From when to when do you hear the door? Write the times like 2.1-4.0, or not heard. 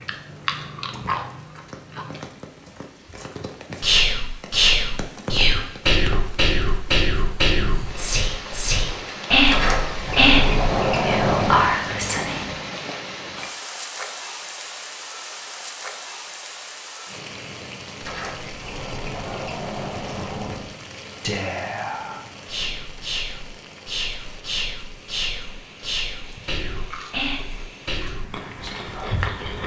9.4-11.7, 18.0-20.7.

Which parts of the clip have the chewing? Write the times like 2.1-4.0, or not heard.
0.0-2.2, 26.8-29.6.